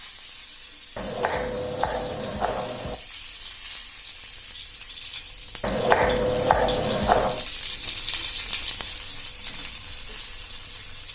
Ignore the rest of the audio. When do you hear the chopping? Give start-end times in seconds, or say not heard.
0.9-3.0, 5.6-7.5.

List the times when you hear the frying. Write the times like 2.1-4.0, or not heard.
0.0-11.1.